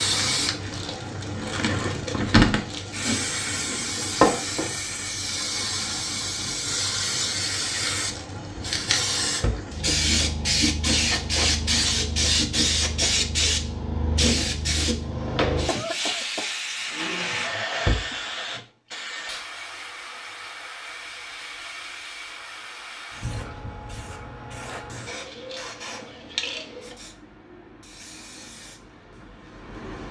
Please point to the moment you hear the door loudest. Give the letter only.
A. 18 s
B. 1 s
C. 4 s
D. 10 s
A.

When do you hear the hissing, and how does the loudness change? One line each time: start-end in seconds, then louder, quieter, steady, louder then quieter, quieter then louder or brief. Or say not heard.
0.0-30.0 quieter.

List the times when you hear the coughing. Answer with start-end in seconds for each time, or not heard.
15.7-16.5.